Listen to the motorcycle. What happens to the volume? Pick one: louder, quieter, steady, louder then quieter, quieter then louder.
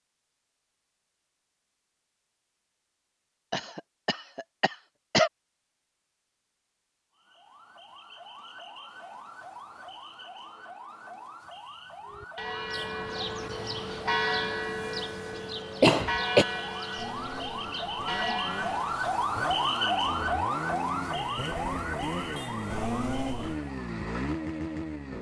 louder.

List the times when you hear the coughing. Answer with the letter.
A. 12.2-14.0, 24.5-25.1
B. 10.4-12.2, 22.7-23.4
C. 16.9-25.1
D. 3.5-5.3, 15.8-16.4
D.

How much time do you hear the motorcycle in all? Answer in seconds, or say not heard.
8 s.